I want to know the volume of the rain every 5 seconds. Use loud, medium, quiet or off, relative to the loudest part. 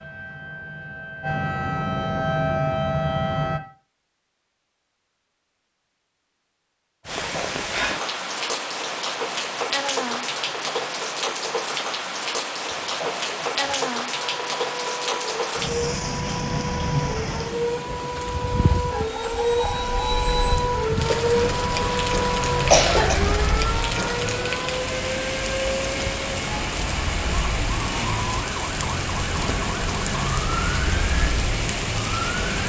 off, loud, loud, loud, loud, loud, loud.